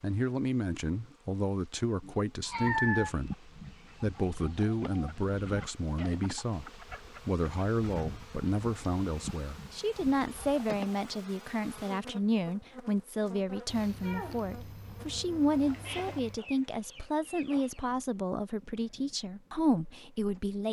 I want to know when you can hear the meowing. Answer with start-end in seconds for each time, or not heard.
2.0-3.1, 13.7-16.4.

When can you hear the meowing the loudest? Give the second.
3 s.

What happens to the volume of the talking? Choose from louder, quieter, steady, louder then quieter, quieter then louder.
steady.